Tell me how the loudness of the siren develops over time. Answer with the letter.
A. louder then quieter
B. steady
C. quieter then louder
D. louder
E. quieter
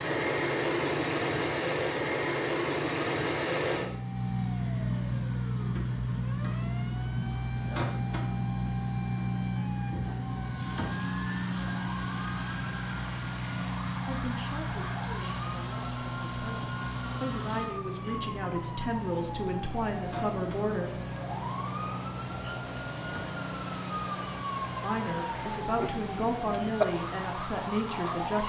D.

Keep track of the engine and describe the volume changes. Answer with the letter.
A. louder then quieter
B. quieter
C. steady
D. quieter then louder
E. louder
B.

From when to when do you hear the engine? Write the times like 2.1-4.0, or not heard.
0.0-28.4.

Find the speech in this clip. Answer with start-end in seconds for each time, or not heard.
14.1-20.9, 24.8-28.4.